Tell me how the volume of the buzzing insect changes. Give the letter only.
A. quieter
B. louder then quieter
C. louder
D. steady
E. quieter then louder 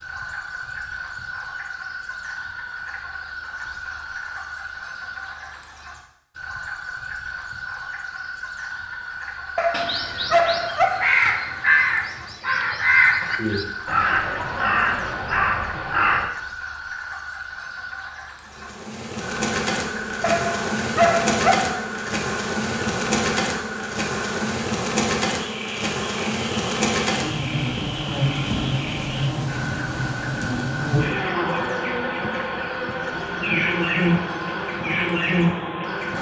D.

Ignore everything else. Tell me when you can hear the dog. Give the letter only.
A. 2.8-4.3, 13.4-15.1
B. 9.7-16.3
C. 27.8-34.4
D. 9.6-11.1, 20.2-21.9
D.